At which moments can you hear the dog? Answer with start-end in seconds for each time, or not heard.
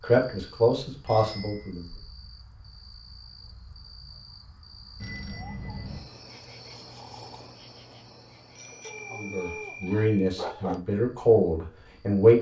8.8-10.8.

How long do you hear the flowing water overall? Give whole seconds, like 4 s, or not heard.
not heard.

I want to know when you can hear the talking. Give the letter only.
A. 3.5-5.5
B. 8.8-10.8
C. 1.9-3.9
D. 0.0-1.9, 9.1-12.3
D.